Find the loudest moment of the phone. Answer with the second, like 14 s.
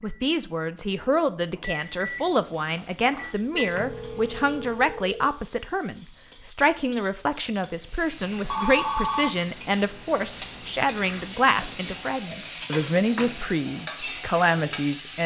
9 s.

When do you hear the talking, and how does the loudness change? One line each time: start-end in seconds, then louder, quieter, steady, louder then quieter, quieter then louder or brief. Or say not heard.
0.0-15.2 steady.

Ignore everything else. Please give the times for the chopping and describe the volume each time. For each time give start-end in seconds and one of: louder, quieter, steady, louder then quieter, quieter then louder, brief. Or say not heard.
not heard.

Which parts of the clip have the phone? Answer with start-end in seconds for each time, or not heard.
3.5-5.3, 8.4-9.3.